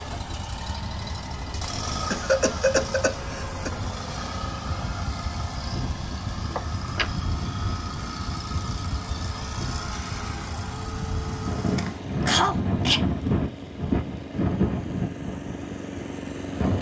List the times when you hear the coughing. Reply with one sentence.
The coughing can be heard from 2.1 to 3.7 s, from 6.5 to 7.1 s and from 11.8 to 13.1 s.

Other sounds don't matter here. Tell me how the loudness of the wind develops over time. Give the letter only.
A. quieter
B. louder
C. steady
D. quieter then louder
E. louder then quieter
B.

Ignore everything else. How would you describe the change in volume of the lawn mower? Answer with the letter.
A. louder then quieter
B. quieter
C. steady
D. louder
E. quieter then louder
C.